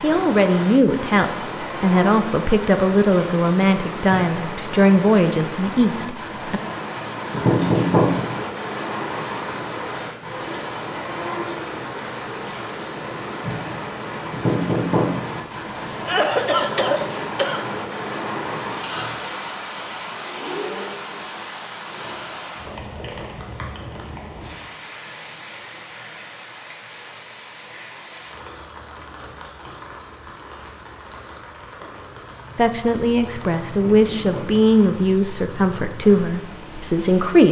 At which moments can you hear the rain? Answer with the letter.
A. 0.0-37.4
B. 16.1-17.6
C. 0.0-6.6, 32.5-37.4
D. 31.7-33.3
A.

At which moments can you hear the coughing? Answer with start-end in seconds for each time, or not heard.
16.1-17.6.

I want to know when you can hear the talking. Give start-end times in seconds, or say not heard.
0.0-6.6, 32.5-37.4.